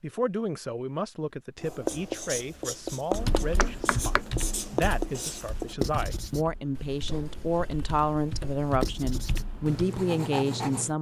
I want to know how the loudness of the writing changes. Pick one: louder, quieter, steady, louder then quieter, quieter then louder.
quieter then louder.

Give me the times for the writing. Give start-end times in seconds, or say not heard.
1.6-10.9.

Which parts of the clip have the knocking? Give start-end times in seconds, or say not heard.
3.5-4.2.